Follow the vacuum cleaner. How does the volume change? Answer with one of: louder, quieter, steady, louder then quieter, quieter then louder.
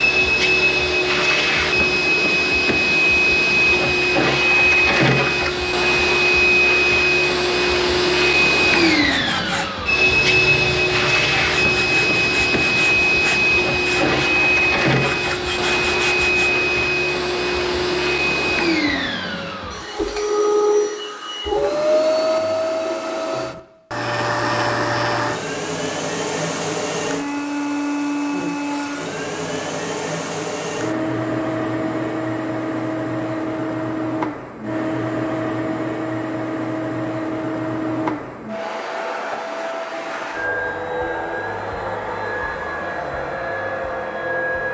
quieter.